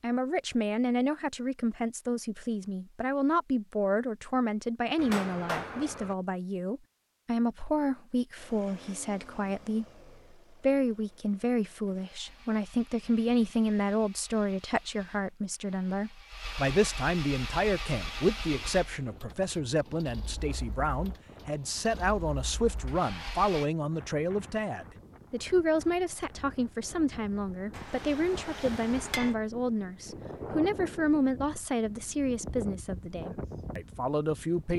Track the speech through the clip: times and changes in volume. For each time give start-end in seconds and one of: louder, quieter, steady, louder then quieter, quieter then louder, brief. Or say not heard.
0.0-9.8 steady
10.6-34.7 steady.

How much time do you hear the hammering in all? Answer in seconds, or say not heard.
3 s.